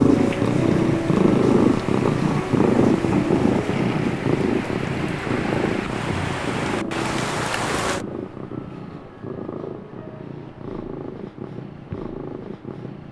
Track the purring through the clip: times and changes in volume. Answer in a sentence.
You can hear the purring from 0.0 to 13.0 s, getting quieter.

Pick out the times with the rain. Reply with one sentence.
The rain can be heard from 0.0 to 8.1 s.